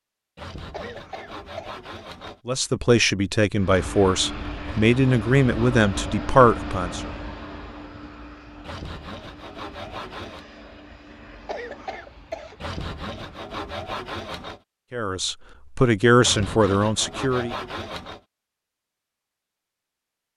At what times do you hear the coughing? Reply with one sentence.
The coughing can be heard from 0.7 to 1.8 s and from 11.4 to 12.6 s.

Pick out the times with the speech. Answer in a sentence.
The speech can be heard from 2.5 to 7.1 s and from 14.9 to 17.6 s.